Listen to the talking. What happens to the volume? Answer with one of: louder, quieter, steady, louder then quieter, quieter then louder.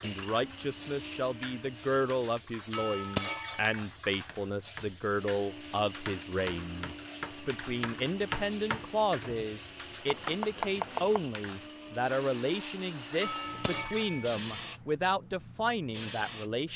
steady.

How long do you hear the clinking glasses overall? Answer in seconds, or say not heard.
2 s.